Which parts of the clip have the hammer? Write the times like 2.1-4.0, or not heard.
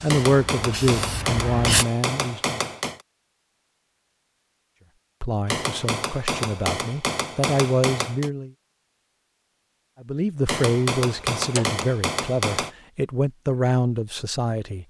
0.1-3.0, 5.5-8.3, 10.4-12.7.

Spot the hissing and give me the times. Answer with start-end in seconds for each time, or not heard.
0.0-1.9.